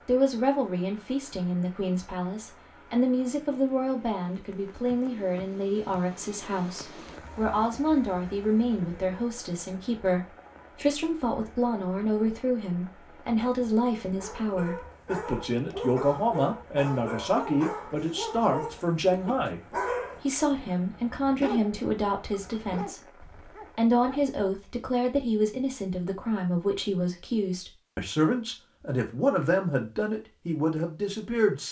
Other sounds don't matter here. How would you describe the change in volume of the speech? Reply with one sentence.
The loudness of the speech stays about the same.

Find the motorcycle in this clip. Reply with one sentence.
You can't hear the motorcycle here.